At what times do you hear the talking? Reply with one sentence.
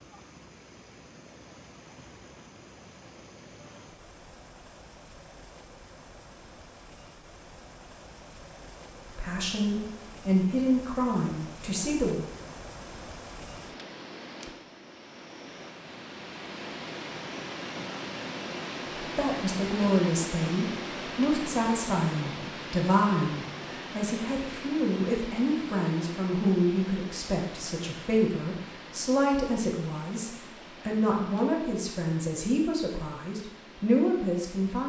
You can hear the talking from 9.1 to 12.3 s and from 19.0 to 34.8 s.